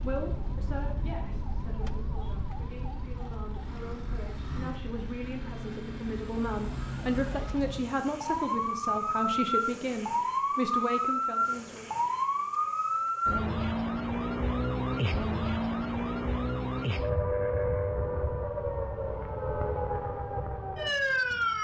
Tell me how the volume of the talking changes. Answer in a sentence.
The volume of the talking goes up.